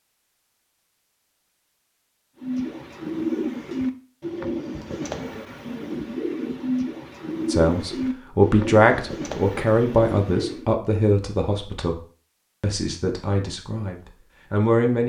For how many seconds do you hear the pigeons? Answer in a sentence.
The pigeons can be heard for 8 seconds in total.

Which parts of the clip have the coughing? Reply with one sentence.
You can't hear the coughing here.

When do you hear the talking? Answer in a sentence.
The talking can be heard from 7.5 to 11.9 s and from 12.6 to 15.0 s.